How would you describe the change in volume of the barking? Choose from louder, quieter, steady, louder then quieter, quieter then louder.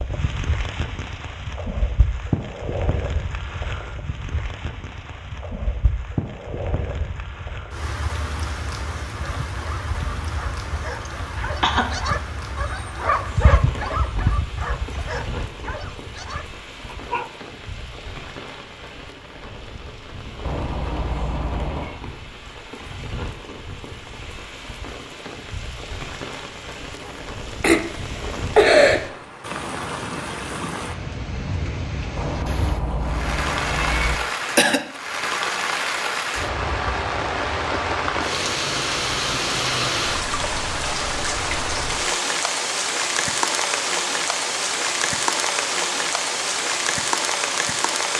louder then quieter.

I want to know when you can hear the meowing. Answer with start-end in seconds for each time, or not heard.
20.4-22.0, 32.1-34.1.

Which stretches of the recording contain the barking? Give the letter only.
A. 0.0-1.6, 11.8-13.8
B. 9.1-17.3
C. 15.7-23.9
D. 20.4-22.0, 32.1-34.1
B.